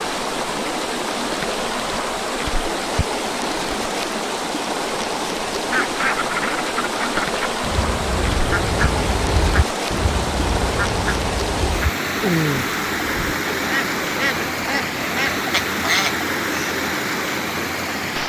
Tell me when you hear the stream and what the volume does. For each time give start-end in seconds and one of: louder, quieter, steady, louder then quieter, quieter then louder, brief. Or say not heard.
0.0-18.2 steady.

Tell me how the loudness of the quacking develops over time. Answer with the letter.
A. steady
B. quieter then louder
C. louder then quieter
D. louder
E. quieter
A.